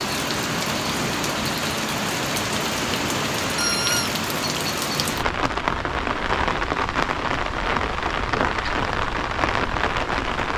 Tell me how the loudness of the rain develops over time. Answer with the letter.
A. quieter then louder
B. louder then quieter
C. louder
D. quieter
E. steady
E.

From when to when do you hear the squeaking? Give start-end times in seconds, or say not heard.
3.5-4.2.